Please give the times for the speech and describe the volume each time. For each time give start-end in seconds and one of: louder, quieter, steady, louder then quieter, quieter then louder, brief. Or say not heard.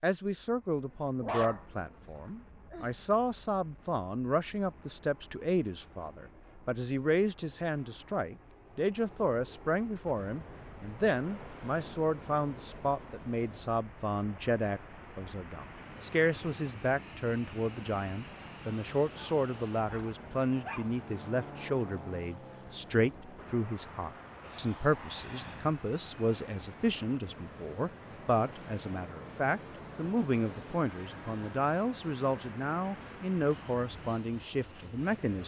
0.0-35.4 steady.